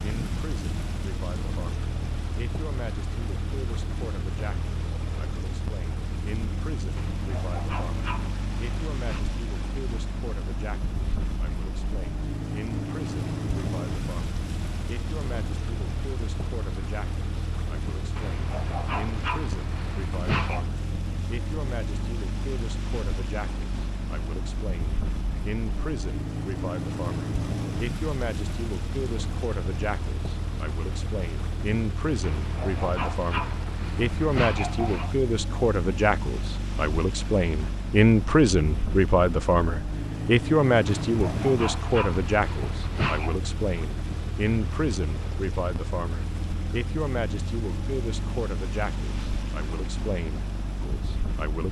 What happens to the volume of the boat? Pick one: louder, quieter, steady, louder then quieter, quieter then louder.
steady.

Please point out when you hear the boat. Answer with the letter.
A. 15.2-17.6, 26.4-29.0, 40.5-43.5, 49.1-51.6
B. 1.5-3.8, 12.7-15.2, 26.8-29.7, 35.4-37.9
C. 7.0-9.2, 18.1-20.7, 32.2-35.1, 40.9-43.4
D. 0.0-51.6
D.